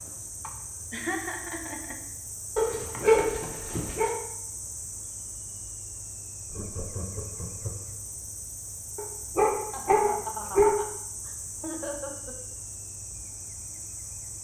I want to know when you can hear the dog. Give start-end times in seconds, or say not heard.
2.5-4.2, 8.9-10.8.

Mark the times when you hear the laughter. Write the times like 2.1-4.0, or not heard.
0.4-2.0, 6.5-8.0, 9.7-12.3.